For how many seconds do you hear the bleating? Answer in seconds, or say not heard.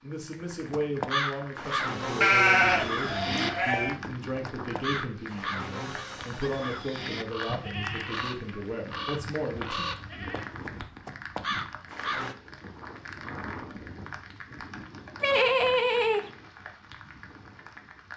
6 s.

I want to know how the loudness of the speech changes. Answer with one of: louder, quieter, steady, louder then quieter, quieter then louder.
steady.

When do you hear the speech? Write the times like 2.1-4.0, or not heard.
0.0-9.8.